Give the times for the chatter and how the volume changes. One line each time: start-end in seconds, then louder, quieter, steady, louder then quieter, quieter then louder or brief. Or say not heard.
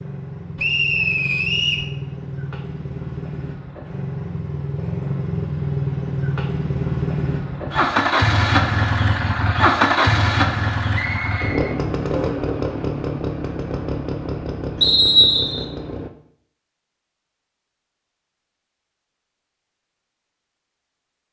not heard.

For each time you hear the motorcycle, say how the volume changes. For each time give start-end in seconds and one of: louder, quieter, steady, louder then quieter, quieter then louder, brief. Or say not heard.
0.0-16.1 louder then quieter.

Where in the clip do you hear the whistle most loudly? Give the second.
15 s.